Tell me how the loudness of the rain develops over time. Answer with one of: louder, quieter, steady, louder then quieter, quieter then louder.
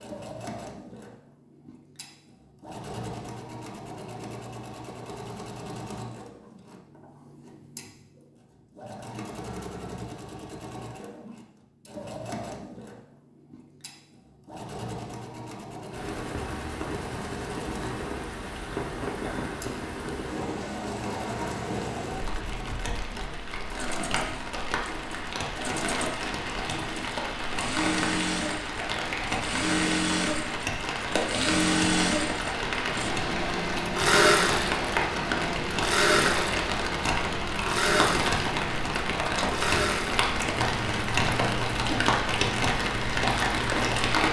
louder.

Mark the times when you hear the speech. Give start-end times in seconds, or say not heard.
not heard.